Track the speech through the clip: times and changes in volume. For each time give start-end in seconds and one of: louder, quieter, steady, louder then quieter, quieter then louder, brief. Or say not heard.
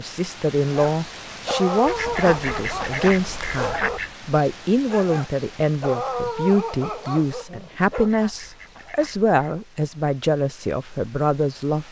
0.0-11.8 steady.